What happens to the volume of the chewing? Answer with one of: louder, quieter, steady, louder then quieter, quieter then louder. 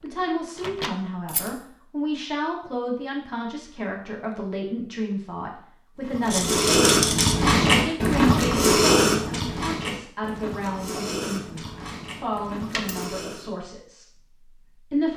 quieter.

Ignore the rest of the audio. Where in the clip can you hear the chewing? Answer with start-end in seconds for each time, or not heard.
6.0-13.5.